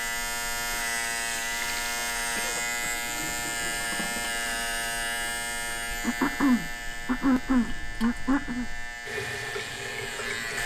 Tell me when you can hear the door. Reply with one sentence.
You can't hear the door here.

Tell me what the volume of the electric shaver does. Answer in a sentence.
The volume of the electric shaver goes down.